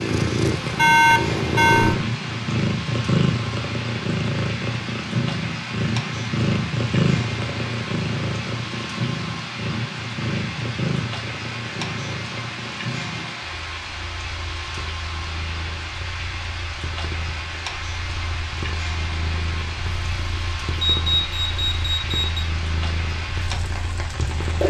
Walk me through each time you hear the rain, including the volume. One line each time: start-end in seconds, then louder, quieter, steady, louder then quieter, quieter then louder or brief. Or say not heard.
0.0-24.6 steady.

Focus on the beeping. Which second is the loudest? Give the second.
1 s.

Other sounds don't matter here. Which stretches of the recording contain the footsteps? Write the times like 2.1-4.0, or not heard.
not heard.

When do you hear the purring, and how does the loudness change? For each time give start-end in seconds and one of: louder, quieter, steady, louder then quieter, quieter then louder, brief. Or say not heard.
0.0-24.6 quieter.